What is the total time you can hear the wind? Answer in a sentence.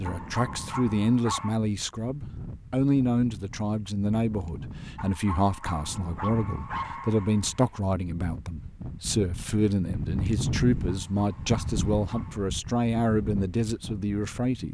The wind can be heard for 15 seconds in total.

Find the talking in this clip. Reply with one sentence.
You can hear the talking from 0.0 to 14.7 s.